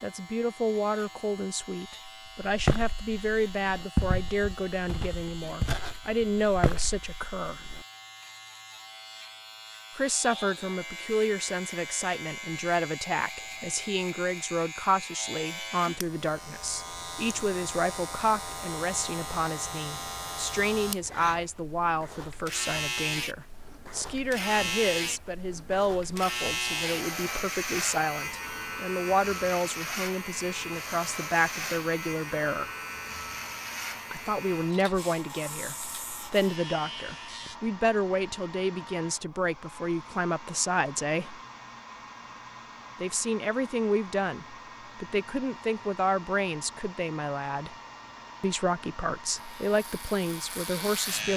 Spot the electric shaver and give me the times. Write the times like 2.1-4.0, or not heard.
0.0-37.5, 49.4-51.3.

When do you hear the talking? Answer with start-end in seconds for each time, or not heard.
0.0-7.7, 9.9-32.7, 34.1-41.4, 43.0-47.8, 48.4-51.3.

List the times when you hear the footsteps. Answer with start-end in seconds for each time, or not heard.
2.4-7.8.